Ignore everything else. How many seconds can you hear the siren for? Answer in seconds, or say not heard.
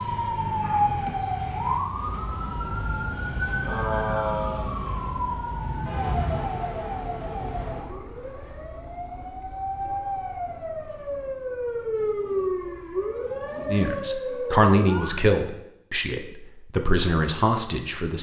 15 s.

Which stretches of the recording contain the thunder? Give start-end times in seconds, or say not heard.
5.5-6.7.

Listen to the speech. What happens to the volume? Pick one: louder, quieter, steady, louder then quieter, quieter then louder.
quieter then louder.